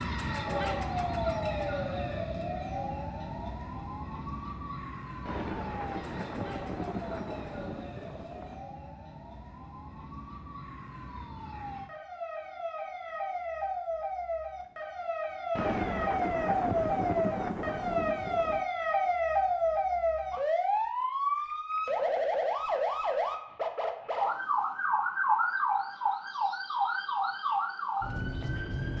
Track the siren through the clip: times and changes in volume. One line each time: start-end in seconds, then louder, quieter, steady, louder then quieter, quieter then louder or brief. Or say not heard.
0.0-28.9 quieter then louder.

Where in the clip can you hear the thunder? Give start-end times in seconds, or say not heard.
5.2-8.7, 15.6-18.6.